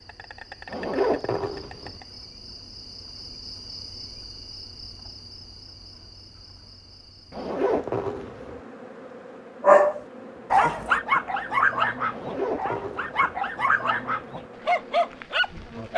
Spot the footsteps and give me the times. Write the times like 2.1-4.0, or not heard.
not heard.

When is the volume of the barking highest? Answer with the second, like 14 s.
10 s.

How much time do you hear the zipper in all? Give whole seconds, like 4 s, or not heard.
4 s.